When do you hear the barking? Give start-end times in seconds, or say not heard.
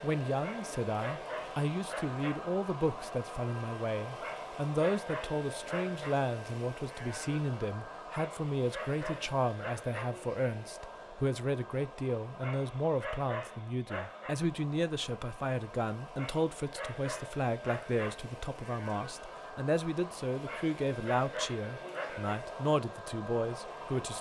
0.4-2.4, 4.2-6.2, 8.1-10.1, 12.4-14.3, 16.1-18.1, 20.4-22.3.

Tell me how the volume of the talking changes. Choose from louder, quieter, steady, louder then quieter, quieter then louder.
steady.